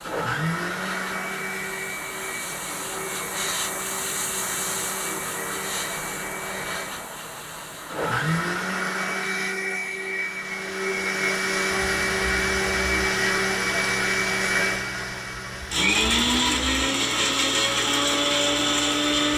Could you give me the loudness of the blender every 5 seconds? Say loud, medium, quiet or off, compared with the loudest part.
medium, medium, loud, loud.